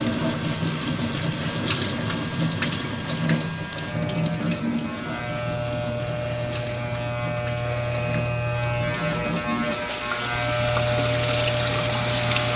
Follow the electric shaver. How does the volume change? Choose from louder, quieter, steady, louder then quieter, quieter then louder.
louder.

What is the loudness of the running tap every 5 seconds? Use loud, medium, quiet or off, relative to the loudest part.
loud, medium, loud.